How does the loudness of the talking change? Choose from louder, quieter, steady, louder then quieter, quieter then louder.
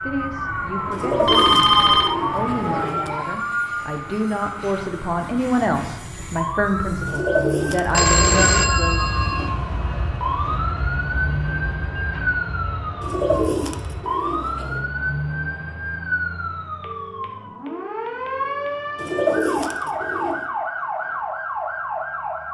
louder.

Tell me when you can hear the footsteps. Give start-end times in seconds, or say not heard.
not heard.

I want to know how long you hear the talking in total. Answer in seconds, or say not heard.
9 s.